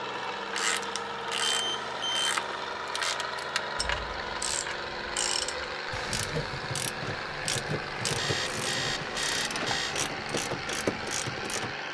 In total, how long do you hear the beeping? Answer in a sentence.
The beeping can be heard for 3 seconds in total.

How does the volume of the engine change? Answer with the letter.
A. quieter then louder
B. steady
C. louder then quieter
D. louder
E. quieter
B.